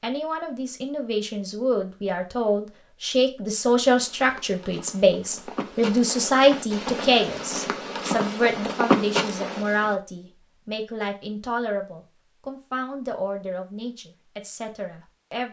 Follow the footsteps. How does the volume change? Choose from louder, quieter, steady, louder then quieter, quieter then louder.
louder.